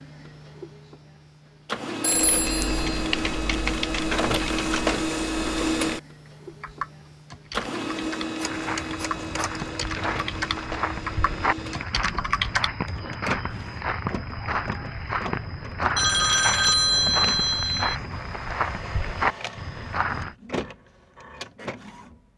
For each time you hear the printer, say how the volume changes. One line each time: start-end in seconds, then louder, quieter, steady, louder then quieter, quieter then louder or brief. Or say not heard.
0.0-22.2 quieter.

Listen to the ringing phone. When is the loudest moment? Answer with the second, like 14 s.
17 s.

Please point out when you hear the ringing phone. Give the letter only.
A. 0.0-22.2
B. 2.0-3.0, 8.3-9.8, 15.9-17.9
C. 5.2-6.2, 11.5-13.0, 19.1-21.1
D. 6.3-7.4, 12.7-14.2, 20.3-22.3
B.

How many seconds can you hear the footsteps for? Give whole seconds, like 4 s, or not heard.
12 s.